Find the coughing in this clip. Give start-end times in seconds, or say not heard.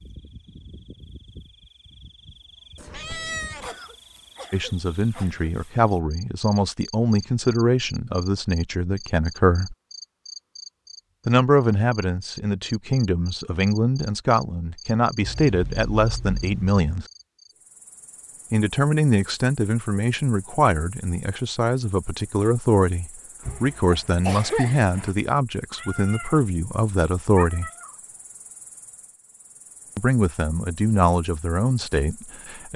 3.6-5.5, 23.4-25.1.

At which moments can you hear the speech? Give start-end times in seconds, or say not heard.
4.5-9.8, 11.2-17.1, 18.5-27.7, 29.9-32.7.